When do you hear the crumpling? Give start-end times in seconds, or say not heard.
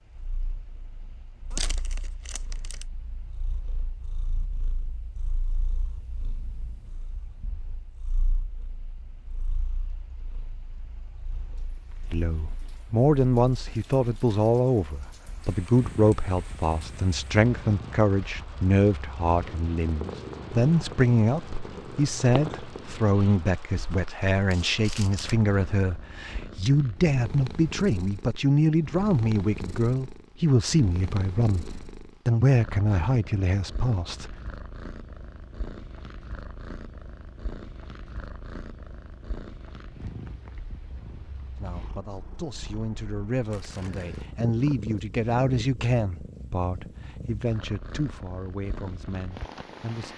1.5-2.9, 24.5-25.4, 43.5-44.1.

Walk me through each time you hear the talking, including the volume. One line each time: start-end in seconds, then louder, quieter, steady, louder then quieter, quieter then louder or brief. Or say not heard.
12.1-31.6 steady
32.2-34.4 brief
41.5-50.1 louder then quieter.